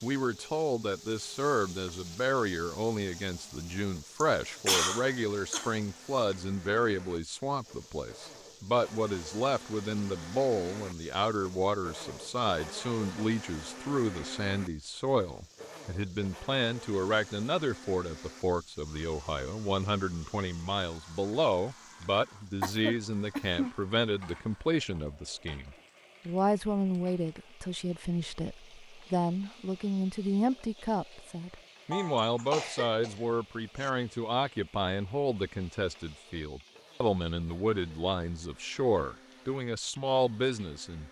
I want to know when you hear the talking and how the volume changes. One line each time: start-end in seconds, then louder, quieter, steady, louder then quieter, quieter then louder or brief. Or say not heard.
0.0-41.0 steady.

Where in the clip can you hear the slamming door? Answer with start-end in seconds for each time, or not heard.
not heard.